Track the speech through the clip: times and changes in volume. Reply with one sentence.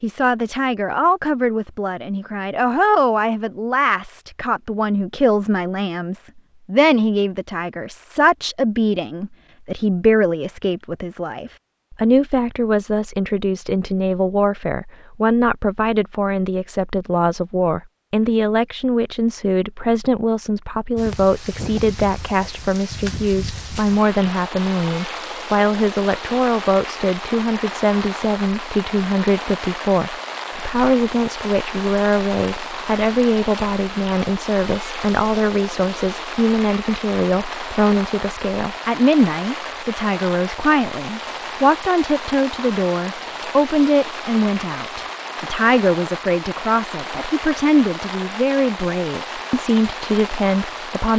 You can hear the speech from 0.0 to 51.1 s, at a steady volume.